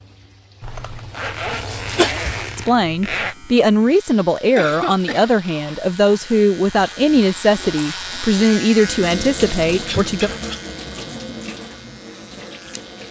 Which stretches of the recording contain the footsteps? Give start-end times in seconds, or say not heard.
not heard.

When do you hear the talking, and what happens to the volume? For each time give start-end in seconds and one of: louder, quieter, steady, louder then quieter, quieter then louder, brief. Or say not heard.
2.5-10.3 steady.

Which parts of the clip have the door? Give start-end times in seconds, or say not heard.
not heard.